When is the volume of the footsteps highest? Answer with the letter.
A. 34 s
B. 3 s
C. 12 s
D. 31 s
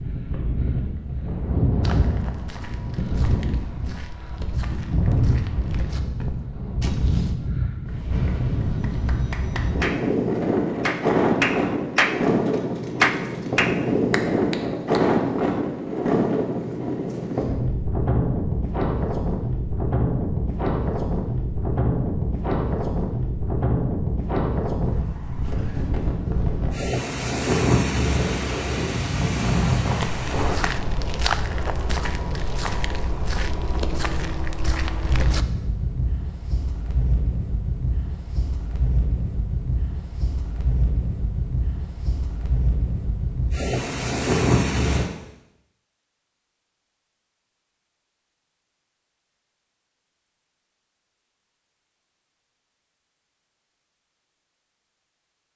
D.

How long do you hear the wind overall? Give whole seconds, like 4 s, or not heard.
45 s.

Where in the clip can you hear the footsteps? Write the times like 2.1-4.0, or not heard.
1.8-7.3, 30.0-35.5.